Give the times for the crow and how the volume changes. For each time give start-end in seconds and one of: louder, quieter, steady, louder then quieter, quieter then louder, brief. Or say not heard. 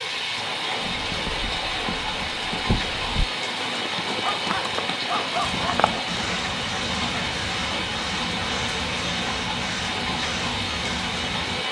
5.4-11.6 steady.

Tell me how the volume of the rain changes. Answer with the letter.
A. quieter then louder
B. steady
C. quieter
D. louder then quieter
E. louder
B.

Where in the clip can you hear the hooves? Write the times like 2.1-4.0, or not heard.
0.8-6.4.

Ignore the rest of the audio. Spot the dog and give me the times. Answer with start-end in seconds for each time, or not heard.
4.2-5.8.